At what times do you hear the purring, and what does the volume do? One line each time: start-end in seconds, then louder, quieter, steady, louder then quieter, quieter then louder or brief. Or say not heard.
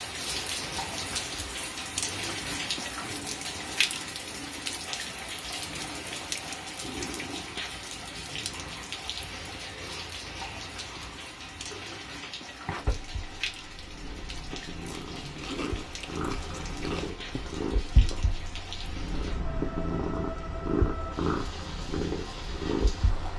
6.8-23.3 louder.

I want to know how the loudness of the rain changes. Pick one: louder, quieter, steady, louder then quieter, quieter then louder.
quieter.